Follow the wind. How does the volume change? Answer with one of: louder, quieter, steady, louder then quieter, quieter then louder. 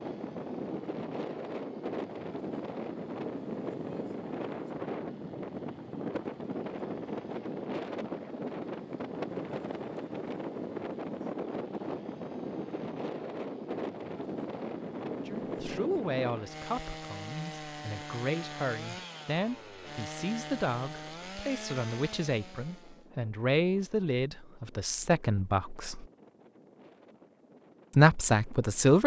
quieter.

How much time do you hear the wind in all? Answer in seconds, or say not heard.
29 s.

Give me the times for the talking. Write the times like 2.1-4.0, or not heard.
15.1-26.1, 27.9-29.0.